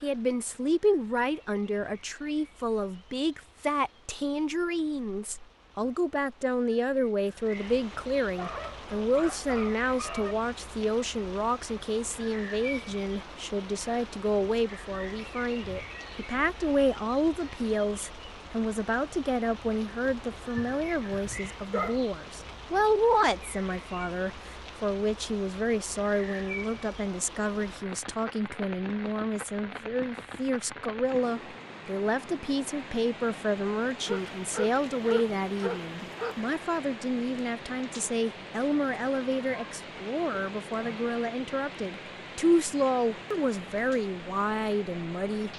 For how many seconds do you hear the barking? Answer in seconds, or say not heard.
6 s.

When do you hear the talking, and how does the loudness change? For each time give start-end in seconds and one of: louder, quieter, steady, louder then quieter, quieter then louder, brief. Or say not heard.
0.0-45.5 steady.